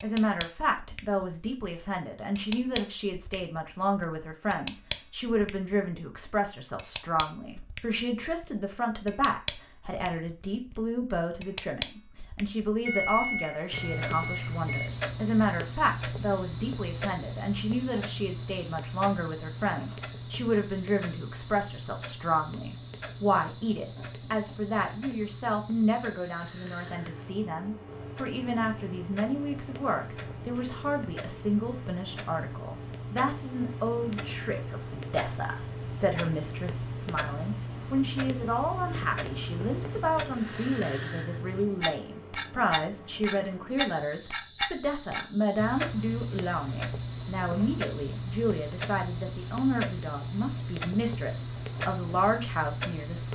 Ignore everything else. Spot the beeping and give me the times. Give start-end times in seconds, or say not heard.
12.8-14.8.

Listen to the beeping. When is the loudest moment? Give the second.
13 s.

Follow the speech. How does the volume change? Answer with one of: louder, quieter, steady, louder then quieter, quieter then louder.
steady.